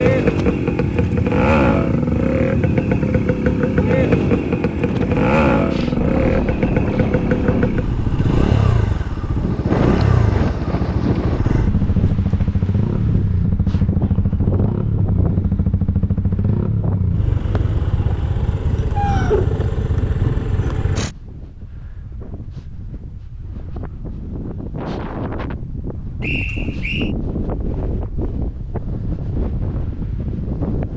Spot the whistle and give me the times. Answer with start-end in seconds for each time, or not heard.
26.2-27.1.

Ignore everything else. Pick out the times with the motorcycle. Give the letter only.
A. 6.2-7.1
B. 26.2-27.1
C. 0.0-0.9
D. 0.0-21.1
D.